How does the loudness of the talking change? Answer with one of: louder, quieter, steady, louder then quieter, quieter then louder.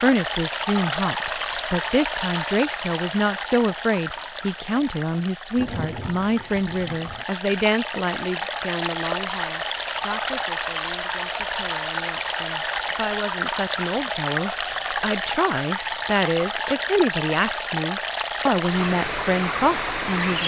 quieter then louder.